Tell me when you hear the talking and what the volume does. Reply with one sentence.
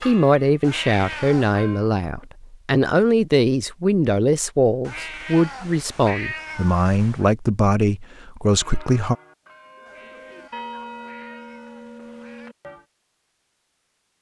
You can hear the talking from 0.0 to 9.2 s, at a steady volume.